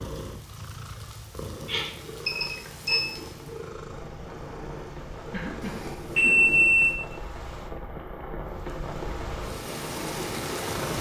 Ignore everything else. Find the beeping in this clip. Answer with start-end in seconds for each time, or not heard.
1.6-3.0, 5.6-7.0.